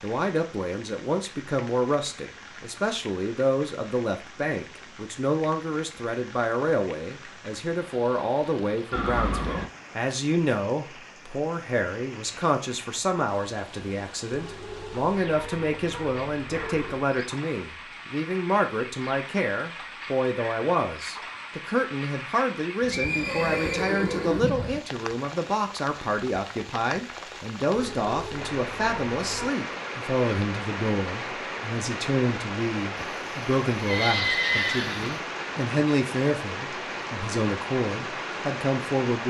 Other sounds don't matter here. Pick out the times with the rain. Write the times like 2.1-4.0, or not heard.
0.0-39.2.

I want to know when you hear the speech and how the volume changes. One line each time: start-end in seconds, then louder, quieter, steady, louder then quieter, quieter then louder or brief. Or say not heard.
0.0-39.2 steady.